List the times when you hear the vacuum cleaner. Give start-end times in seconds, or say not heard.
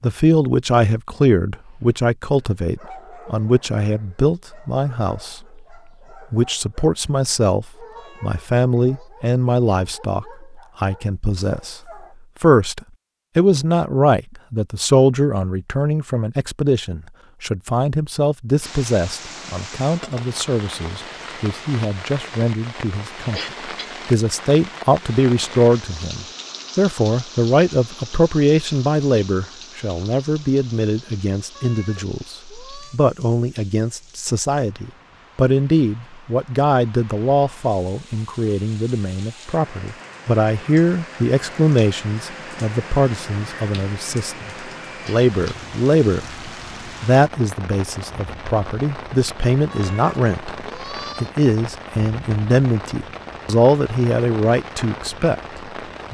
not heard.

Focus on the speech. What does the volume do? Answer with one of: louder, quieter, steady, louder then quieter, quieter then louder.
steady.